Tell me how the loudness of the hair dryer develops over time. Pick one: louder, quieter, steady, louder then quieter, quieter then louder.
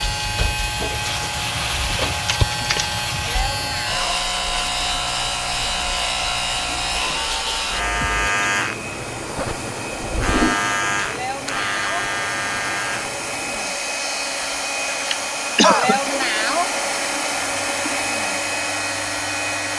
louder.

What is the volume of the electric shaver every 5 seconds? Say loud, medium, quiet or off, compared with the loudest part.
loud, loud, loud, medium.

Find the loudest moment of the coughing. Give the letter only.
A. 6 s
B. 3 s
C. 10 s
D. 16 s
D.